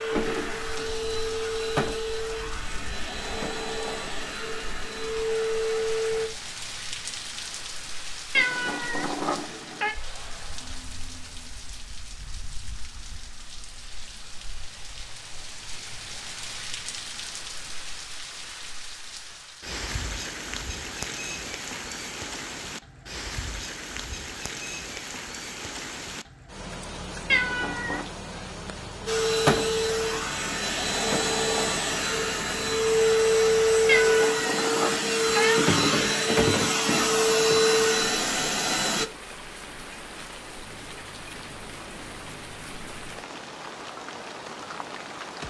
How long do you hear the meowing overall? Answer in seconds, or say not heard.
4 s.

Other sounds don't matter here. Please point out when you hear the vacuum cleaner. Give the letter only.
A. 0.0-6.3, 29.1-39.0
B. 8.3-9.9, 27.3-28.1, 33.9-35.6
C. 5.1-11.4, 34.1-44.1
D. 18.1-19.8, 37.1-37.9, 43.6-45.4
A.